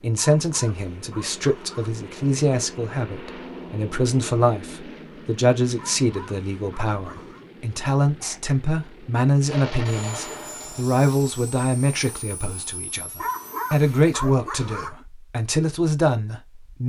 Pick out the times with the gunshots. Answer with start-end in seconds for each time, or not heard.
9.4-10.8.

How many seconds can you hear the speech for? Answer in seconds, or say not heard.
17 s.